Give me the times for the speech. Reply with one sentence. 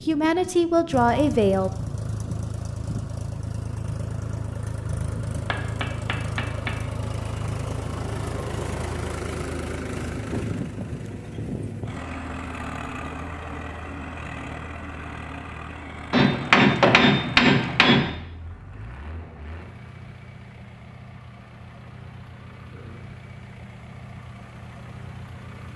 You can hear the speech from 0.1 to 1.7 s.